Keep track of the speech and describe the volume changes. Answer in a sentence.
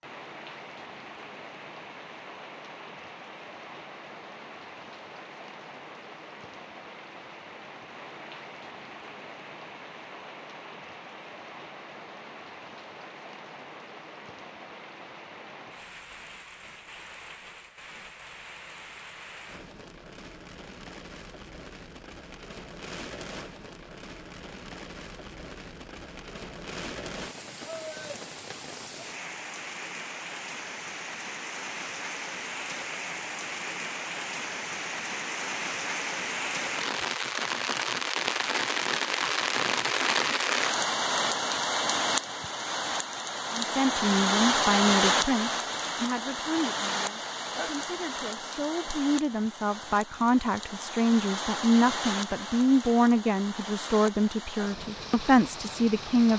The volume of the speech goes down, then up.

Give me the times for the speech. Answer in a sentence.
The speech can be heard from 43.5 to 56.3 s.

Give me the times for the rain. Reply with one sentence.
The rain can be heard from 0.0 to 56.3 s.